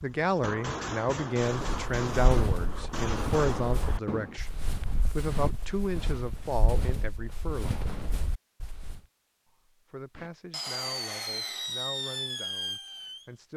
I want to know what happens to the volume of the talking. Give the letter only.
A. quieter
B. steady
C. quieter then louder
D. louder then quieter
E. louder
A.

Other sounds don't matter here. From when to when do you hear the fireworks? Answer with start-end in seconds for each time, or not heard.
0.0-4.4, 10.2-13.3.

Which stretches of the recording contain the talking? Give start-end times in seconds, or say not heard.
0.0-8.0, 9.9-13.5.